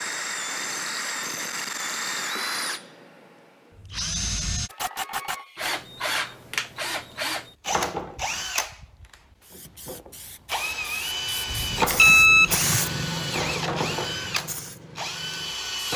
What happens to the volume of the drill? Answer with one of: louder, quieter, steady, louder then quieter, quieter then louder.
steady.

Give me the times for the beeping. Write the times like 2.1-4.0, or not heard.
11.5-12.7.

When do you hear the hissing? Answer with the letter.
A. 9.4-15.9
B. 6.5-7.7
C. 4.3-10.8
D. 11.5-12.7
A.